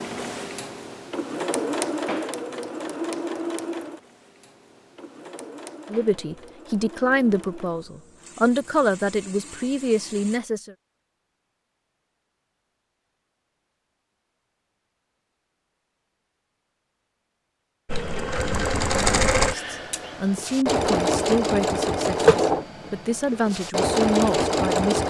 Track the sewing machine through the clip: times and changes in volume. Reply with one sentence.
The sewing machine can be heard from 0.0 to 10.4 s, getting quieter; and from 17.9 to 25.0 s, getting quieter then louder.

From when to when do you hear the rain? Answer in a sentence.
The rain can't be heard in this clip.